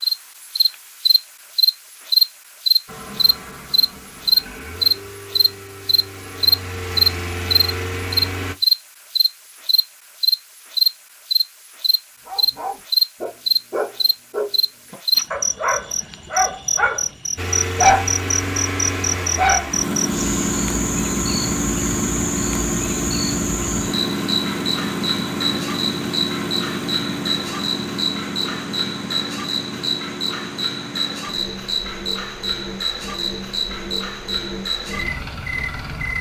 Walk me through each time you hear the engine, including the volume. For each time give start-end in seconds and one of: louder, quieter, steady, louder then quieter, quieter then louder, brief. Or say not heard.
2.9-8.6 louder
17.4-36.1 quieter.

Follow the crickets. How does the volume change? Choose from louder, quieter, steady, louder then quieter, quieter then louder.
quieter.